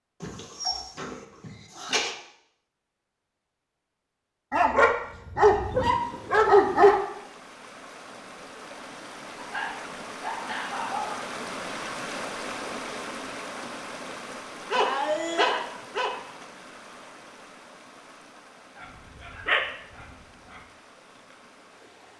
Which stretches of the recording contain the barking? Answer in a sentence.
You can hear the barking from 0.2 to 2.1 s, from 4.5 to 7.0 s, from 9.3 to 11.2 s, from 14.7 to 16.1 s and from 18.8 to 20.1 s.